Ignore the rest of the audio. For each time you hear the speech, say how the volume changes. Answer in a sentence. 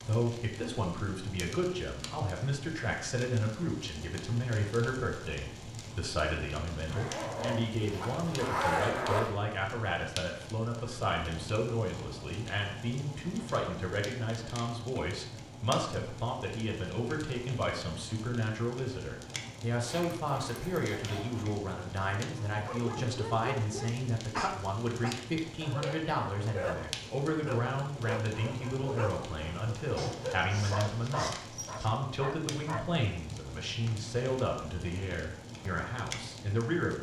You can hear the speech from 0.0 to 36.9 s, at a steady volume.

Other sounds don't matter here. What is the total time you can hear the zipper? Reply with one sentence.
You can hear the zipper for 6 seconds altogether.